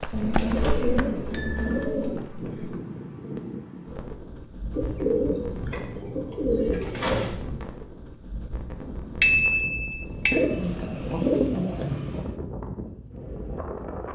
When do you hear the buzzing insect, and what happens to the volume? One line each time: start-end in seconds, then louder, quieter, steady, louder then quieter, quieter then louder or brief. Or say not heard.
not heard.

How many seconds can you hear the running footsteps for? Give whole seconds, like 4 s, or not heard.
3 s.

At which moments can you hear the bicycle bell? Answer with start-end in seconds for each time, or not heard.
1.3-1.9, 9.2-10.4.